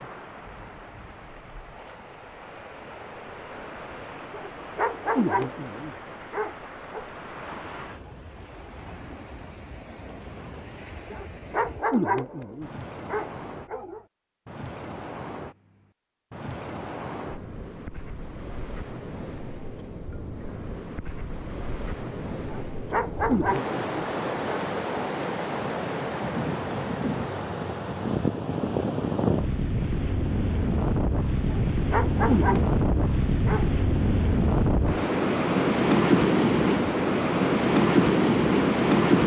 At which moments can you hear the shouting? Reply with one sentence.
The shouting can't be heard in this clip.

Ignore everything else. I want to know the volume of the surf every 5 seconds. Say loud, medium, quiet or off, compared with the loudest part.
quiet, quiet, quiet, quiet, quiet, medium, medium, loud.